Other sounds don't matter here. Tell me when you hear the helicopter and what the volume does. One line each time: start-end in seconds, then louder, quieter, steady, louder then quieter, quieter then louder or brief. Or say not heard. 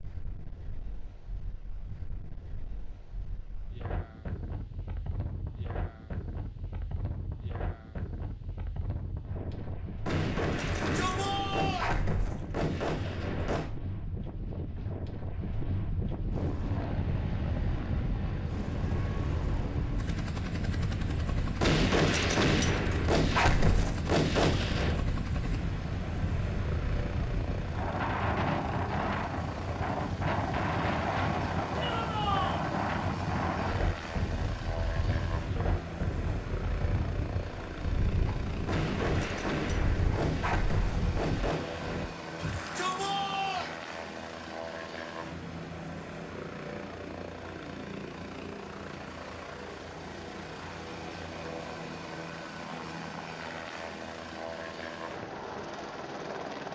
16.3-56.7 steady.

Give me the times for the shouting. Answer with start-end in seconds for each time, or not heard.
10.6-11.9, 31.8-32.6, 42.4-43.8.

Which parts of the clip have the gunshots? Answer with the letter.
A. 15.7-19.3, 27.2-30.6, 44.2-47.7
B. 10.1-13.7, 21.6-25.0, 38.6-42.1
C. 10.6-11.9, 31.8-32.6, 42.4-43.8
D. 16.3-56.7
B.